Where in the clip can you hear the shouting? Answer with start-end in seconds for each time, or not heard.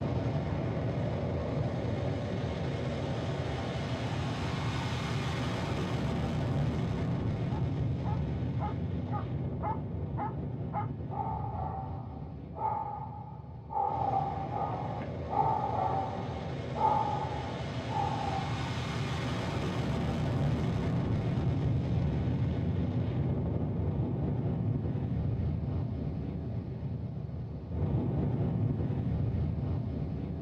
not heard.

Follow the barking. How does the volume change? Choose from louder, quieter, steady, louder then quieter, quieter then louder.
louder.